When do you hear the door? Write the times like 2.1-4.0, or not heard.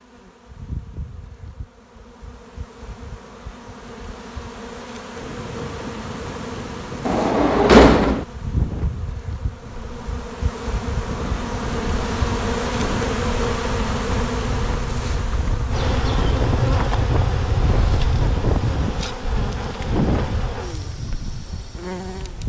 7.0-8.2.